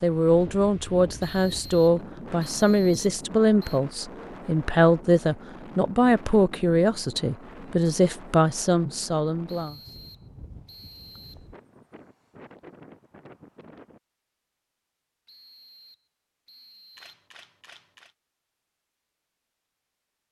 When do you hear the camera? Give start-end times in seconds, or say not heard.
16.9-18.1.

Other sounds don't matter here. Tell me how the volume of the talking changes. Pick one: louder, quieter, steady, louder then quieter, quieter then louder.
steady.